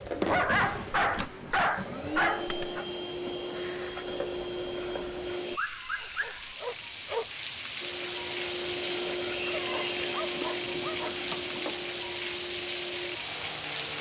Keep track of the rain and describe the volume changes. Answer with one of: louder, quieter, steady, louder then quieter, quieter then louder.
quieter then louder.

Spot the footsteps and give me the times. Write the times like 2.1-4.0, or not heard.
not heard.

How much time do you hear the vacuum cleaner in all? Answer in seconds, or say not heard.
12 s.